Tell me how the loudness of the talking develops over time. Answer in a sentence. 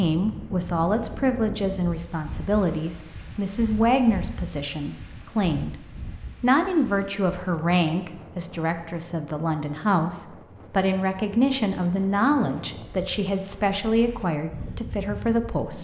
The loudness of the talking stays about the same.